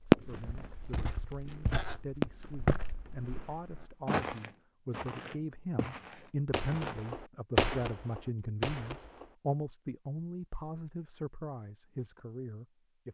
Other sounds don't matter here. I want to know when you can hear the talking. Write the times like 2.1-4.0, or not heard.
0.1-13.0.